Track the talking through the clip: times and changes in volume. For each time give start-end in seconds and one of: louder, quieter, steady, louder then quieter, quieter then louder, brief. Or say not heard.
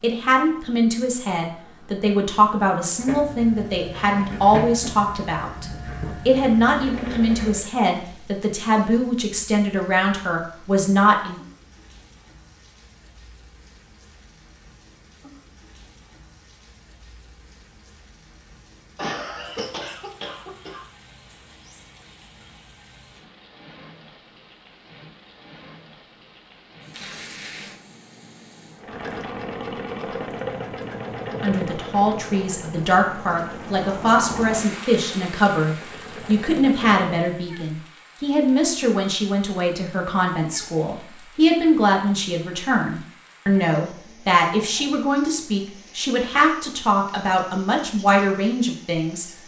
0.0-11.3 steady
31.2-49.3 steady.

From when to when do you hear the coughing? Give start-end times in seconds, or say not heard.
18.9-20.9.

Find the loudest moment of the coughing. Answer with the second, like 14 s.
19 s.